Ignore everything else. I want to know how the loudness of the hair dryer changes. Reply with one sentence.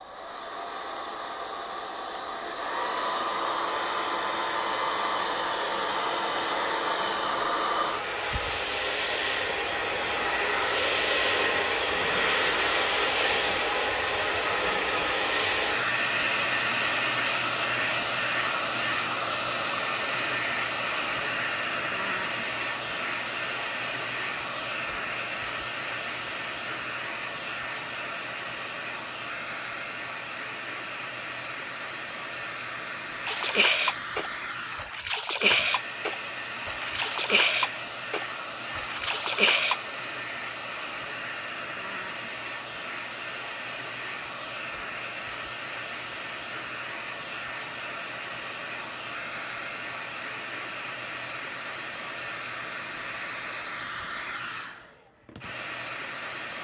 The volume of the hair dryer goes down.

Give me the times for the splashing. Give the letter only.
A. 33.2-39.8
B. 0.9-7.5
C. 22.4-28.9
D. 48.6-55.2
A.